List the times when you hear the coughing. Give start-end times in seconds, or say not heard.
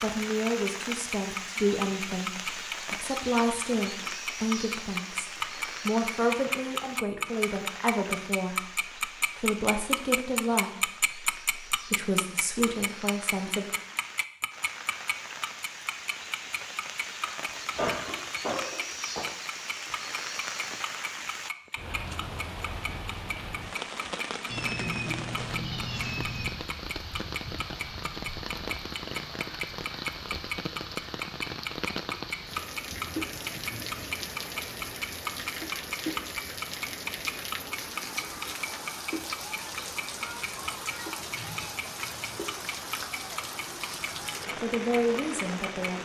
17.4-19.2.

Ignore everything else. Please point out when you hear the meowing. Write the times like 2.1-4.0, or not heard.
24.4-26.5.